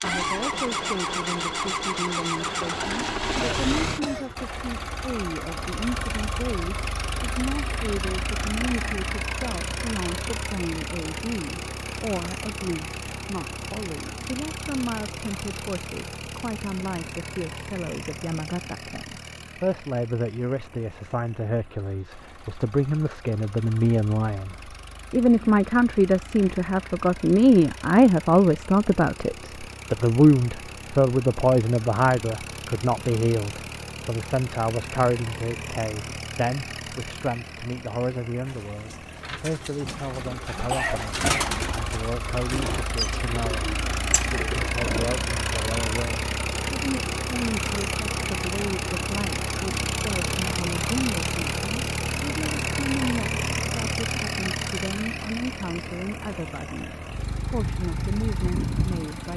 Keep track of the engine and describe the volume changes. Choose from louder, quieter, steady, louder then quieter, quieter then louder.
quieter then louder.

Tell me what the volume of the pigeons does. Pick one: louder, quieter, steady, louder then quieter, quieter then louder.
louder then quieter.